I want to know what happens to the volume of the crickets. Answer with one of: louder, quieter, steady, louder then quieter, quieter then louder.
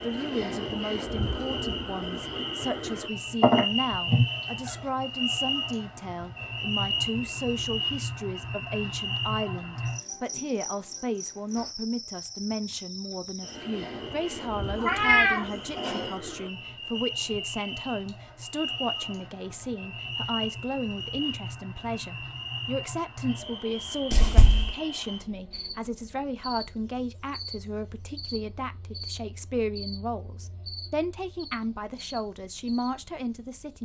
quieter.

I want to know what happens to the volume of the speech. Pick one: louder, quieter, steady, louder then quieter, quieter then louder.
steady.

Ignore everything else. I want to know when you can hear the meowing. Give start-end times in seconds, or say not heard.
3.4-4.7, 14.8-16.1, 24.1-24.8.